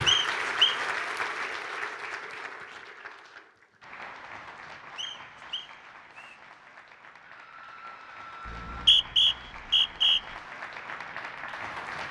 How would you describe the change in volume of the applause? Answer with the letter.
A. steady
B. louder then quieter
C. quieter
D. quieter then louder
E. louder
D.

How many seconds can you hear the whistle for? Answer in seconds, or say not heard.
4 s.